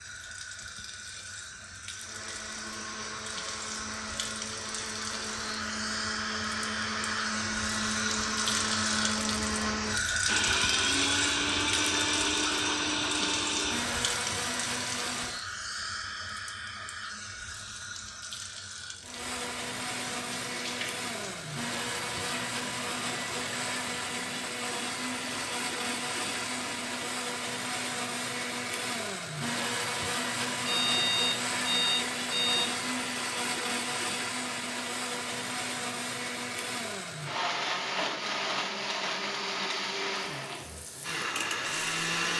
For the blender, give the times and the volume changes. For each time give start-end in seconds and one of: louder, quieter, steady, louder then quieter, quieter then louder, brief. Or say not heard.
1.9-15.4 louder
19.0-42.3 steady.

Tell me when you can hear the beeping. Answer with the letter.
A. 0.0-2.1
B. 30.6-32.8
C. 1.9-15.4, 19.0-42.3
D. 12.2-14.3
B.